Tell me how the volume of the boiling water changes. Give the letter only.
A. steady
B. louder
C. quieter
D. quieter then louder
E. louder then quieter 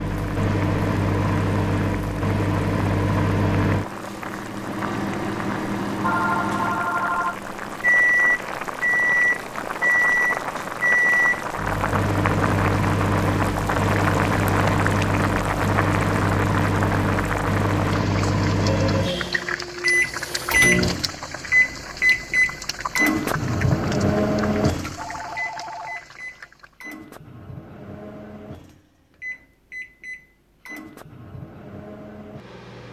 E.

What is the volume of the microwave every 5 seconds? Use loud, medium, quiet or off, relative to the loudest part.
loud, loud, loud, loud, loud, quiet, quiet.